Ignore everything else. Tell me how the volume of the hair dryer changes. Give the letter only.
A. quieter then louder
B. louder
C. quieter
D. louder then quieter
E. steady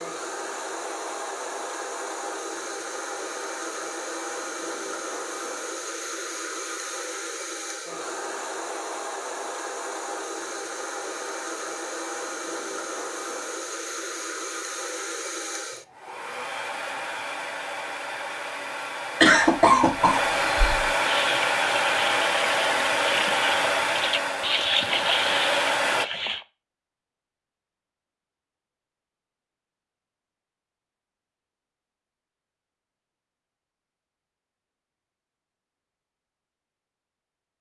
B.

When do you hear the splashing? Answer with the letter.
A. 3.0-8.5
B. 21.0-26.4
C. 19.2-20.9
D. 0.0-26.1
B.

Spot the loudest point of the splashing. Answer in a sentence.
The volume of the splashing peaks at 25 seconds.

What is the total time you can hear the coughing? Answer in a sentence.
The coughing can be heard for 2 seconds in total.